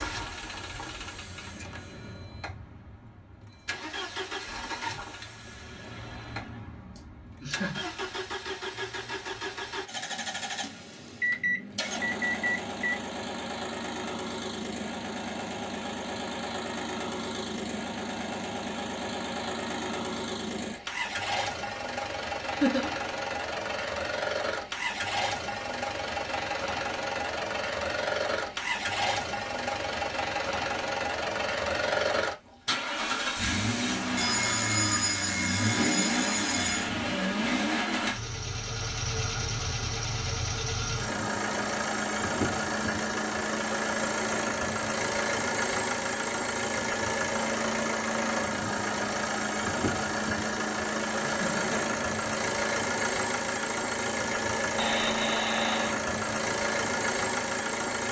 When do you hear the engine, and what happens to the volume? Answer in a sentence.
The engine can be heard from 0.0 to 58.0 s, getting louder.